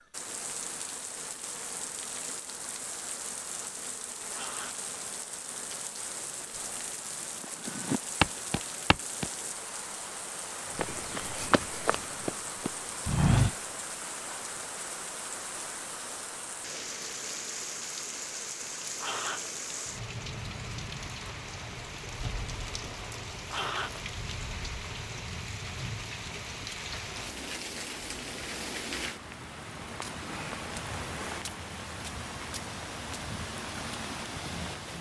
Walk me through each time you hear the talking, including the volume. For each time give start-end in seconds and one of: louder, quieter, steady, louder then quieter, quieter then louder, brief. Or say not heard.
not heard.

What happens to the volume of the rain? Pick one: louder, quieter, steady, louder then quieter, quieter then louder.
steady.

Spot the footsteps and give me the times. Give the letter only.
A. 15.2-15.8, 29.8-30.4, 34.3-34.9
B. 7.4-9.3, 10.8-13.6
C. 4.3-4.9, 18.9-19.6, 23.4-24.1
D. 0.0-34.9
B.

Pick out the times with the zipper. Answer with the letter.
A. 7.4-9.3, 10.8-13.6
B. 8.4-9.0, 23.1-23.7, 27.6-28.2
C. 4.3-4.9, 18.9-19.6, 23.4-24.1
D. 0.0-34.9
C.